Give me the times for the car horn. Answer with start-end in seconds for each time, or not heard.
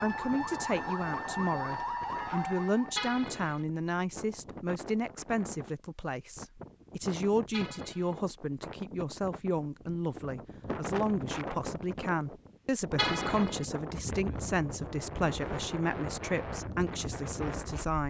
3.0-3.6, 7.5-8.2, 12.9-13.7.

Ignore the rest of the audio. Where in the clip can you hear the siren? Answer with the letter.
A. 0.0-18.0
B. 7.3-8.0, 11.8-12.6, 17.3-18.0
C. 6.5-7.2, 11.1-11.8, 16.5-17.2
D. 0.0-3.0
D.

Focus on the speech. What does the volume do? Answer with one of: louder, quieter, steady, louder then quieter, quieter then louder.
steady.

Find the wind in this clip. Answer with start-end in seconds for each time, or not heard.
0.0-18.0.